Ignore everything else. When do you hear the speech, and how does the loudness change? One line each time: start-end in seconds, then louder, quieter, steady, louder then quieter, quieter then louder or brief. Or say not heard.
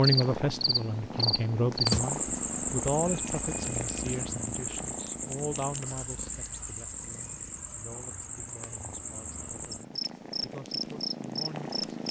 0.0-11.8 quieter.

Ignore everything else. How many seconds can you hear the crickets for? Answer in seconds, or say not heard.
12 s.